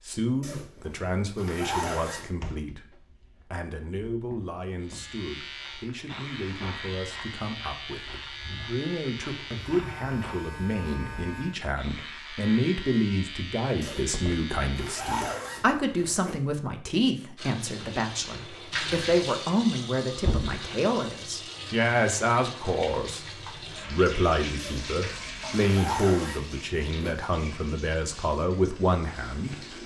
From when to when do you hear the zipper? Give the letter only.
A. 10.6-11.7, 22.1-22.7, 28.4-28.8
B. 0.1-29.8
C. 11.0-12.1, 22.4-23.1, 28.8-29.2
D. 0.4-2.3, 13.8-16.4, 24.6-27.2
D.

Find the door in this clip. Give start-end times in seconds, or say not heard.
2.4-3.5, 13.8-14.5, 20.2-20.6.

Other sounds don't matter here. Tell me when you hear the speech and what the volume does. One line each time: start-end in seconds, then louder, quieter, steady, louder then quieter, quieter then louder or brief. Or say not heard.
0.1-29.8 louder.